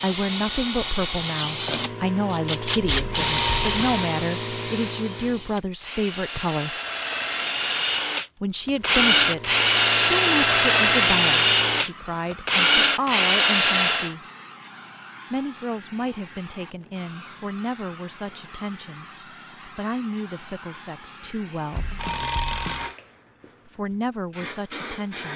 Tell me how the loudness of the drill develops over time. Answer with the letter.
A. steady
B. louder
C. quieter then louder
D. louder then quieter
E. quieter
C.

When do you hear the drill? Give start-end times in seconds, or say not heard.
0.0-14.2.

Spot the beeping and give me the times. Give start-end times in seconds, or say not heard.
3.0-4.0, 21.7-22.9.